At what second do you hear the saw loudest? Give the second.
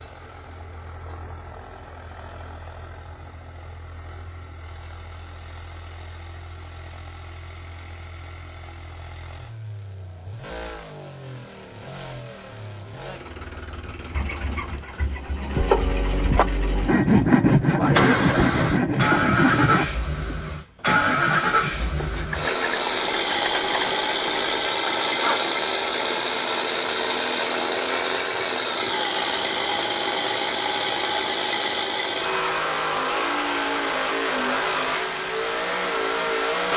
17 s.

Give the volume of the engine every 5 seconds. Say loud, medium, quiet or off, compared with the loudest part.
quiet, quiet, quiet, loud, loud, loud, loud, loud.